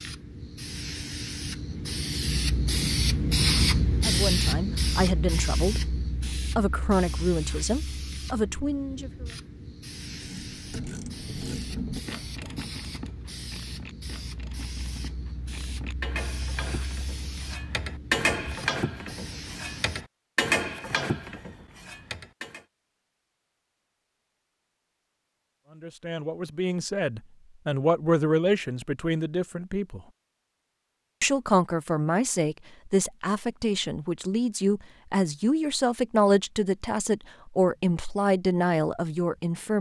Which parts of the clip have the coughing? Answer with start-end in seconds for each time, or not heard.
not heard.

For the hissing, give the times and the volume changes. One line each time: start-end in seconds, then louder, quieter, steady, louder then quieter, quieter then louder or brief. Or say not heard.
0.0-20.1 quieter.